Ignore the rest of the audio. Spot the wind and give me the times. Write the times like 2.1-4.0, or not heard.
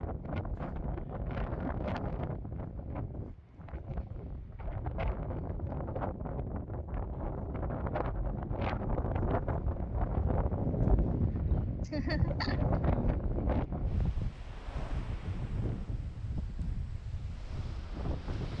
0.0-18.5.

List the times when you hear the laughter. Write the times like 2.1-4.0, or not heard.
11.8-12.6.